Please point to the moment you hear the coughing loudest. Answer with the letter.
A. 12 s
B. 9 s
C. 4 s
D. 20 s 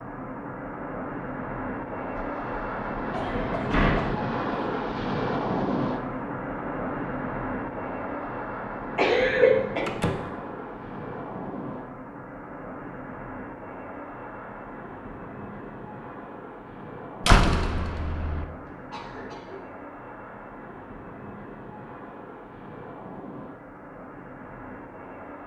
B.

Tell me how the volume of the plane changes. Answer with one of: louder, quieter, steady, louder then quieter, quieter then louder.
quieter.